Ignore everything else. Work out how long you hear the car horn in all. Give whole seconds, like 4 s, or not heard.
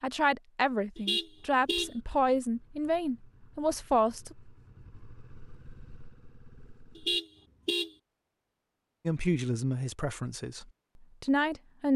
2 s.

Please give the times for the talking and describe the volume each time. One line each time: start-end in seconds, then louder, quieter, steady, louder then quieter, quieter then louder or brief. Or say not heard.
0.0-4.3 steady
9.1-11.9 brief.